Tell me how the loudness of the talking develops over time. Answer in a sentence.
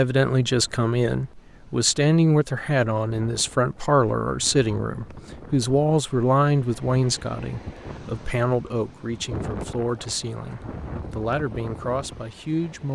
The loudness of the talking goes down.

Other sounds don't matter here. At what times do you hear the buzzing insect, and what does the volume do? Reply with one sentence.
You can't hear the buzzing insect here.